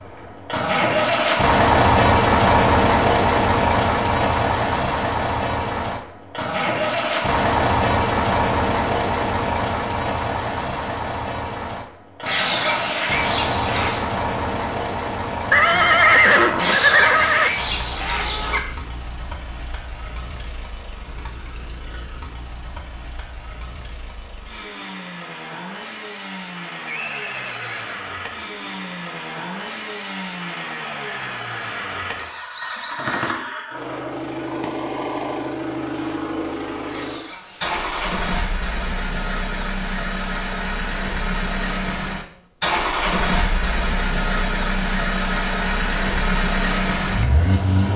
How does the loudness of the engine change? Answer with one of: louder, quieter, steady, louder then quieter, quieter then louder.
quieter then louder.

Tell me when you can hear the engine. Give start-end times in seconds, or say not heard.
0.0-47.9.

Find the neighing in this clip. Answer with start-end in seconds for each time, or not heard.
15.5-17.5, 26.8-28.1.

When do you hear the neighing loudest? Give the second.
16 s.